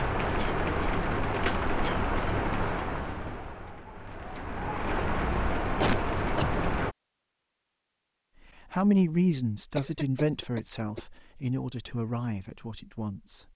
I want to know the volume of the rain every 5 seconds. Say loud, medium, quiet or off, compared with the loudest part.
loud, loud, off.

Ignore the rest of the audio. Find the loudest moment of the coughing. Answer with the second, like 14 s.
6 s.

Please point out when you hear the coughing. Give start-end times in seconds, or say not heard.
0.3-1.1, 1.8-2.5, 5.8-6.7, 9.8-11.1.